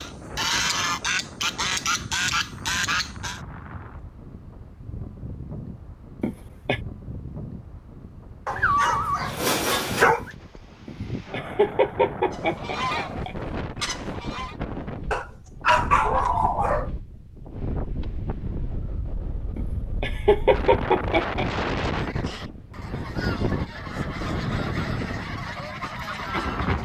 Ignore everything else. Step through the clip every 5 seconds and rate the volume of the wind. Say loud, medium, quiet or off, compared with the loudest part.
medium, medium, medium, medium, loud, loud.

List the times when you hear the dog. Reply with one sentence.
The dog can be heard from 8.4 to 10.3 s and from 15.1 to 16.9 s.